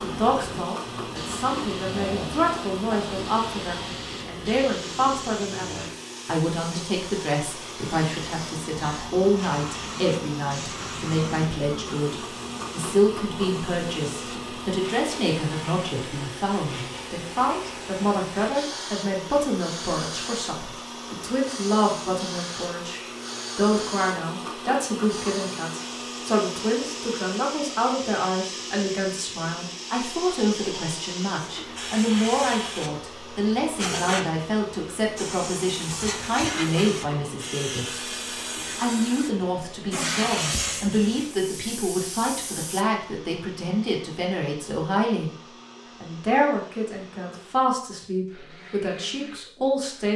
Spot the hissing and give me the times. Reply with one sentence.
You can hear the hissing from 0.0 to 42.9 s.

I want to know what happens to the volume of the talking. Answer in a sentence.
The loudness of the talking stays about the same.